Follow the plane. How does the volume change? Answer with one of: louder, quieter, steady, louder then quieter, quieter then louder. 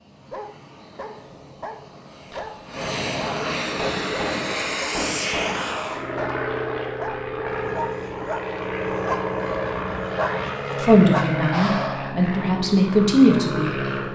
louder.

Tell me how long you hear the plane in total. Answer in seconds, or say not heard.
14 s.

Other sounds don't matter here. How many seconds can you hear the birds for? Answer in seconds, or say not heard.
not heard.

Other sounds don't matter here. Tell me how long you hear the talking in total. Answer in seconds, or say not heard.
3 s.